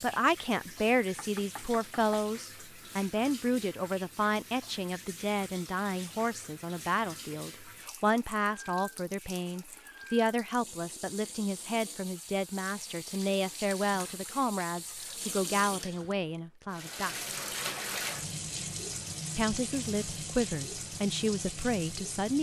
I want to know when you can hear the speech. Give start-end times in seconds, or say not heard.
0.0-17.3, 19.4-22.3.